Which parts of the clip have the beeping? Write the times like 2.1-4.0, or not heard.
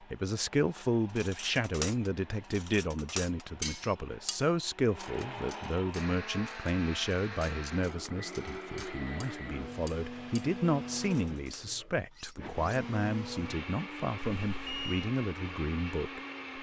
14.2-15.1.